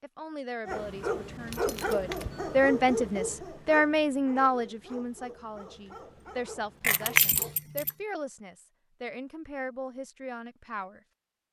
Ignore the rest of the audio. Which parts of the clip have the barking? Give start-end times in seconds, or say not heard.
0.7-7.6.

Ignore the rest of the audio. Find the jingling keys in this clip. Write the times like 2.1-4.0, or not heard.
1.4-2.6, 6.8-7.9.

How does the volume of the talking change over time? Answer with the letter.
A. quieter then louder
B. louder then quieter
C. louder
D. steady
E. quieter
B.